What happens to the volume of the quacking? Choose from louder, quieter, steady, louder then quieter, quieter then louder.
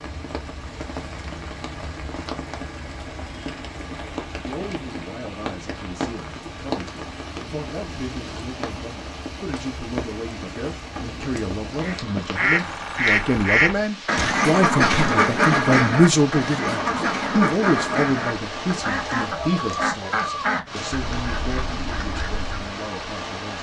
quieter.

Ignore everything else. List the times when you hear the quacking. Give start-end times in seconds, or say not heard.
11.8-22.7.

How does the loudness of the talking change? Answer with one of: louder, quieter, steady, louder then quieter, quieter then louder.
louder then quieter.